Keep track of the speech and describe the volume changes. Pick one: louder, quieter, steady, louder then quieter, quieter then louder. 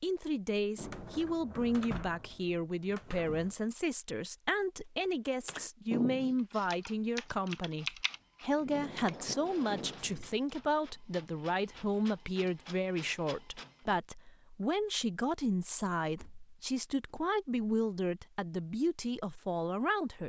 steady.